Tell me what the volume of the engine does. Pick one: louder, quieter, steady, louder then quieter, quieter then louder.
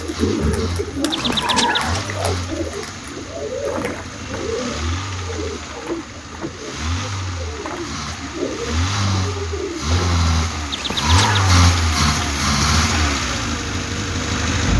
louder.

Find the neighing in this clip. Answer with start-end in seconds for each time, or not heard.
1.1-2.1, 10.7-11.7.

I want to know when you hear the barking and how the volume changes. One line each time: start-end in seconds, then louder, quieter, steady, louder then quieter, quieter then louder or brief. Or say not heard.
not heard.